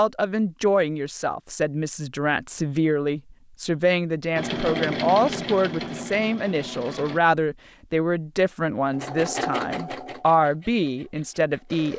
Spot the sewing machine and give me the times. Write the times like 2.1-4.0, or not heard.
4.3-7.2, 8.9-11.9.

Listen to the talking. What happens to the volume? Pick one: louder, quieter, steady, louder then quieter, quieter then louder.
steady.